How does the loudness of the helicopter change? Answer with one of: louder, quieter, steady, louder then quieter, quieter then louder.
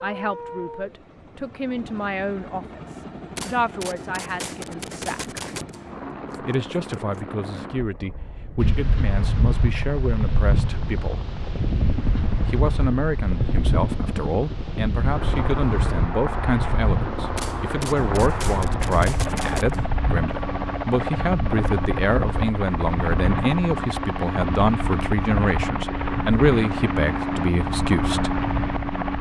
louder.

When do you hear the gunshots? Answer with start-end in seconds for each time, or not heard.
3.4-7.2, 17.4-19.9.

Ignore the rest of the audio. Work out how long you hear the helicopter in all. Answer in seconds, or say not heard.
29 s.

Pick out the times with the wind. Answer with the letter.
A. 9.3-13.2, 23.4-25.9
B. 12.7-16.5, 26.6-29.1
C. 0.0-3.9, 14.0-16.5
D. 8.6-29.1
D.